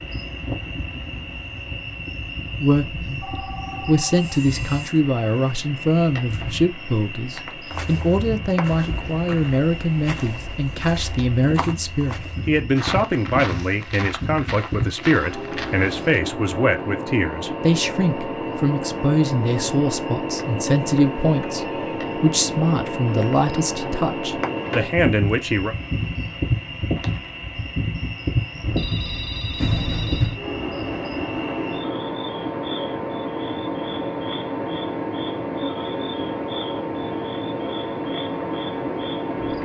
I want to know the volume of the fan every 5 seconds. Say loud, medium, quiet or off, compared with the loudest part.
medium, medium, loud, loud, loud, loud, loud, loud.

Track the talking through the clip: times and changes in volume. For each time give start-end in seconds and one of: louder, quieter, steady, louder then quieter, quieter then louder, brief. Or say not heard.
2.6-25.8 steady.